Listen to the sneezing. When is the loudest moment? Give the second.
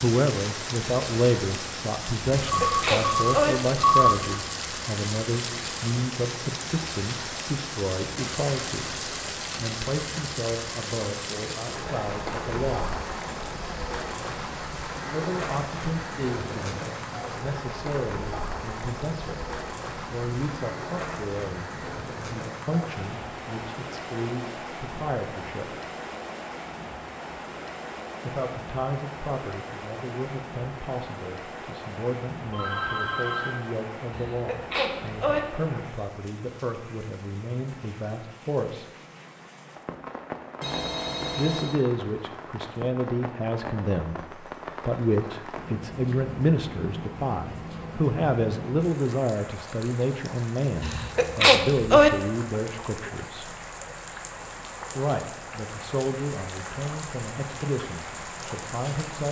52 s.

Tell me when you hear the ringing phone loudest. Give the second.
4 s.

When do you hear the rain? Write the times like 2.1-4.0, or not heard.
0.0-59.2.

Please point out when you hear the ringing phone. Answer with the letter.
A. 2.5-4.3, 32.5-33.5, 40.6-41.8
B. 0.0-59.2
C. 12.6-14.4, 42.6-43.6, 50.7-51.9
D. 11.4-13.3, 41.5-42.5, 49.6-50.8
A.